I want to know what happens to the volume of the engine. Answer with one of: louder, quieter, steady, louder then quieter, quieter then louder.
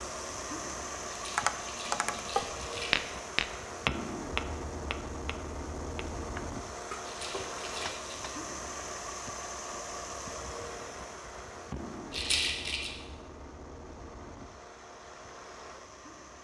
quieter.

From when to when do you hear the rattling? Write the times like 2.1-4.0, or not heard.
1.1-3.0, 7.0-8.3, 12.1-12.9.